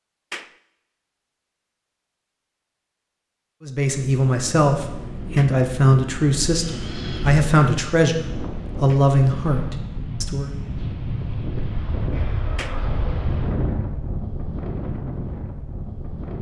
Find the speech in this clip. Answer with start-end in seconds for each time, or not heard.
3.6-10.5.